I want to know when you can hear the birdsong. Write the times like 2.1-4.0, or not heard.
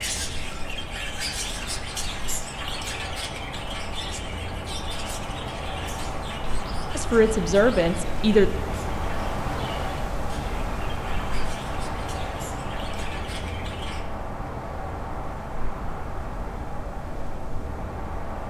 0.0-14.1.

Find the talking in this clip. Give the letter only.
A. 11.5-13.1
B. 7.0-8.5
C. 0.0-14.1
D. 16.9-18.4
B.